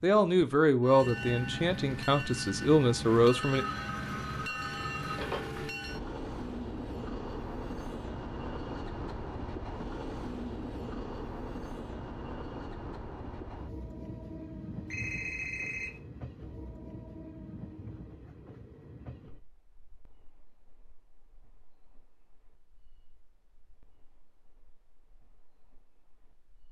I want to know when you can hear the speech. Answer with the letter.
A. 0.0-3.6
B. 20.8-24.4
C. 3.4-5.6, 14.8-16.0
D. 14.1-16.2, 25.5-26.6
A.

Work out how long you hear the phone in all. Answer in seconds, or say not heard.
3 s.